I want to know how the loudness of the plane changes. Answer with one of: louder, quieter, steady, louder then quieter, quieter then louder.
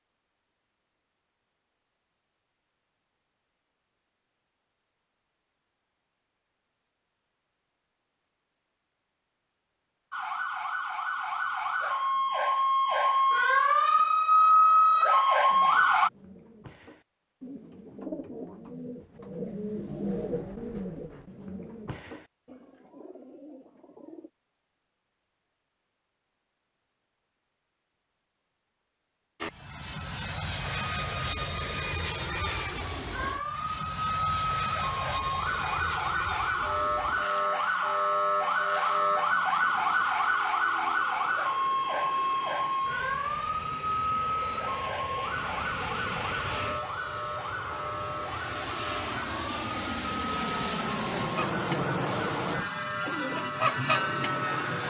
quieter then louder.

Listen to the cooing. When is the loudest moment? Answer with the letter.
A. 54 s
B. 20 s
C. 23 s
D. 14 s
A.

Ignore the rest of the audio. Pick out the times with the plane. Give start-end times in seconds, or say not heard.
29.4-54.8.